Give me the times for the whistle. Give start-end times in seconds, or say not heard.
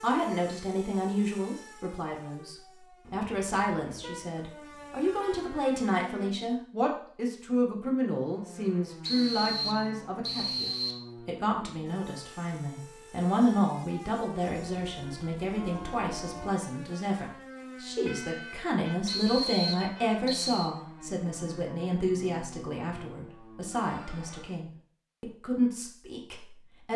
9.0-11.1, 19.1-20.7.